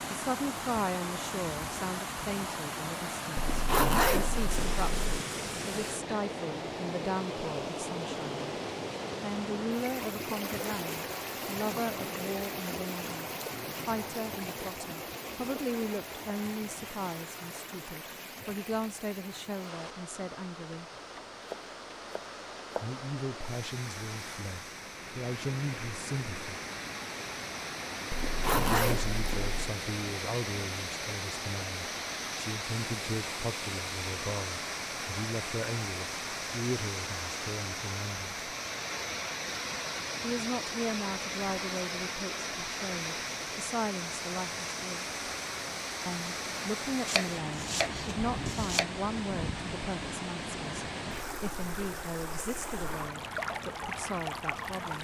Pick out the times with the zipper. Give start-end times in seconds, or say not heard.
3.4-5.2, 28.1-29.7.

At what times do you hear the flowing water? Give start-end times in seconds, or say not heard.
0.0-54.9.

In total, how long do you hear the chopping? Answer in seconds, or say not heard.
3 s.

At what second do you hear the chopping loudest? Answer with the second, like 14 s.
48 s.